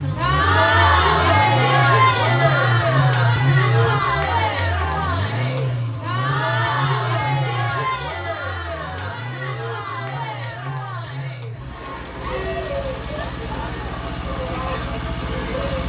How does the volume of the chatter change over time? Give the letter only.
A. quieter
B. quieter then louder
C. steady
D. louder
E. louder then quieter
A.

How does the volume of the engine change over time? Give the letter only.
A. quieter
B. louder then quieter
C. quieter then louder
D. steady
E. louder
A.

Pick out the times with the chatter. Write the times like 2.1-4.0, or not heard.
0.0-15.8.